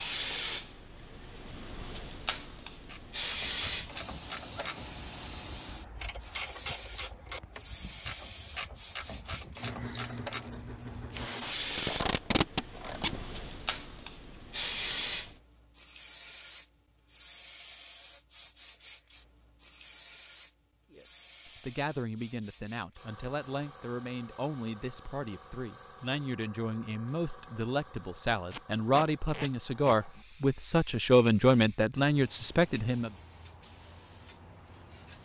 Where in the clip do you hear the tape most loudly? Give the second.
12 s.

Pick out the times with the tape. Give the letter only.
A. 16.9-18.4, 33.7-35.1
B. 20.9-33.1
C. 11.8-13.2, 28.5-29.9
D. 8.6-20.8
C.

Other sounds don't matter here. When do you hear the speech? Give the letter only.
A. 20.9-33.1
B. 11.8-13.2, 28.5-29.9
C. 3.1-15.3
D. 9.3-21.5
A.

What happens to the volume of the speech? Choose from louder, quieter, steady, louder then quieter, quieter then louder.
louder.